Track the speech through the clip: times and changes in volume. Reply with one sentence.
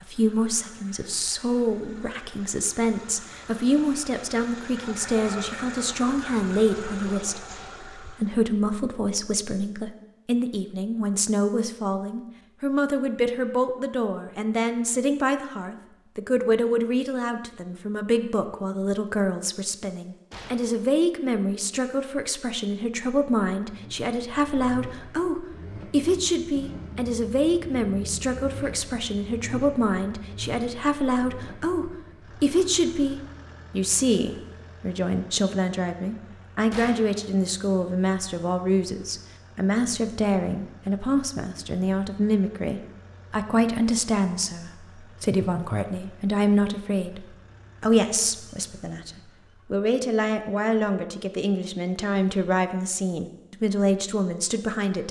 The speech can be heard from 0.0 to 55.0 s, at a steady volume.